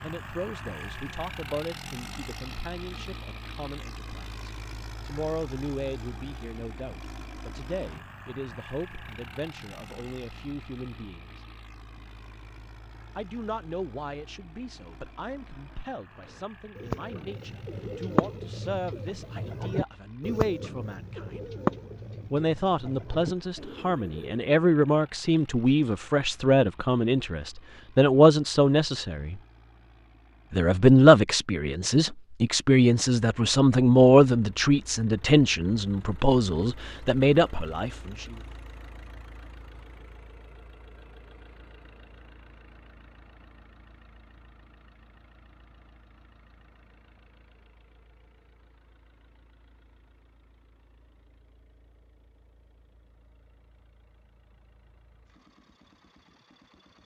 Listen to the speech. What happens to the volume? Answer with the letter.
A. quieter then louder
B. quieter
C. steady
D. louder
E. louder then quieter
D.